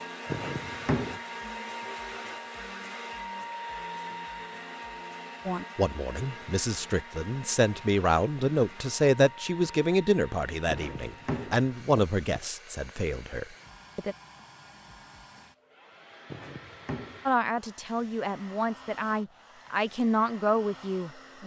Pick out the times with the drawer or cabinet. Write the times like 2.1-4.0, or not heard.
0.3-1.2, 10.7-12.4, 16.3-17.2.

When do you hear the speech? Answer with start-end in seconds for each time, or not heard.
5.5-14.2, 17.2-21.4.